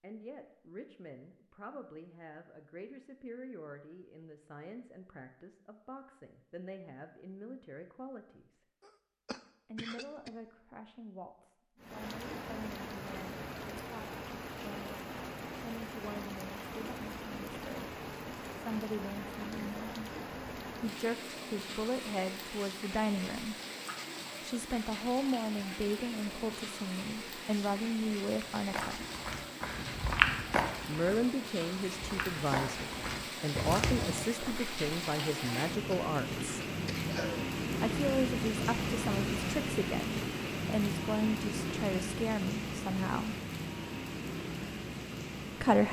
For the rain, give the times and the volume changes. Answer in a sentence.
You can hear the rain from 11.8 to 45.8 s, getting louder.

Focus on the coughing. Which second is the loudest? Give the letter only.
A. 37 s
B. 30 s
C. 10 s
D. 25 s
A.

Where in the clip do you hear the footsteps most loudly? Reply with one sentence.
The loudest moment of the footsteps is at 30 seconds.